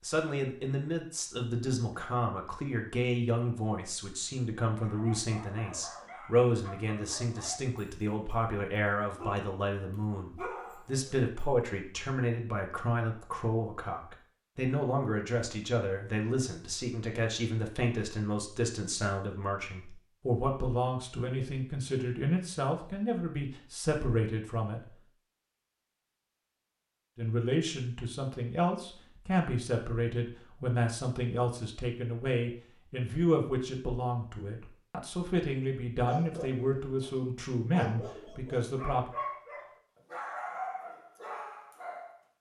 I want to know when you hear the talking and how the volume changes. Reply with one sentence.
The talking can be heard from 0.0 to 24.9 s, at a steady volume; and from 27.1 to 39.1 s, at a steady volume.